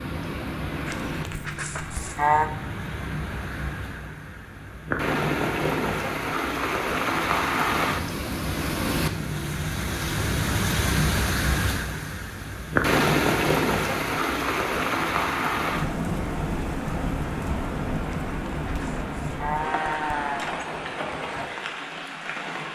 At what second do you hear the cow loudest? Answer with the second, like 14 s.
2 s.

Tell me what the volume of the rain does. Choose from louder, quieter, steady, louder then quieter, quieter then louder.
louder then quieter.